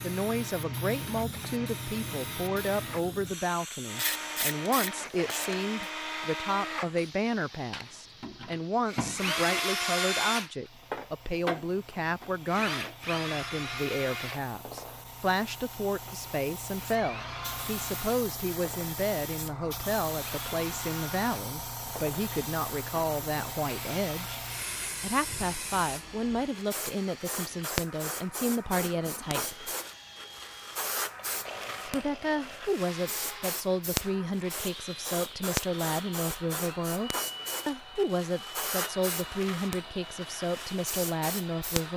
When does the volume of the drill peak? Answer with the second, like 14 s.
10 s.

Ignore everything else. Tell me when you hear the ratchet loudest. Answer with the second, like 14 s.
4 s.